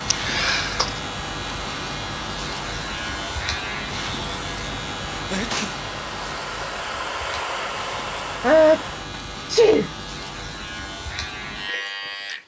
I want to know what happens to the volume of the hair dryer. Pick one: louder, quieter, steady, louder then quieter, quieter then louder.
louder.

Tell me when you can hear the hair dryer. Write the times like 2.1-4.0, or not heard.
0.0-9.2.